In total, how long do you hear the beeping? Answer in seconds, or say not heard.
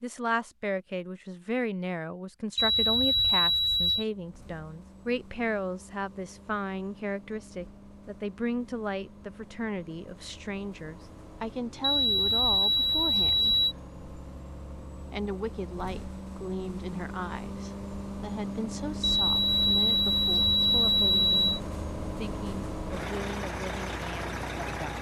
6 s.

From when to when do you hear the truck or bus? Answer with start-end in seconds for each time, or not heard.
4.0-24.9.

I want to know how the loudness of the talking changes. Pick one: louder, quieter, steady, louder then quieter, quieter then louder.
quieter.